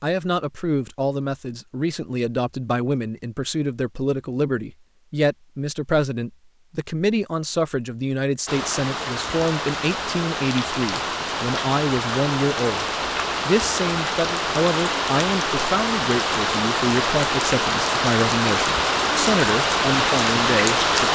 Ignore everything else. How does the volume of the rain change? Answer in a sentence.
The volume of the rain goes up.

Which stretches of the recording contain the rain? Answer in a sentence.
You can hear the rain from 8.4 to 21.0 s.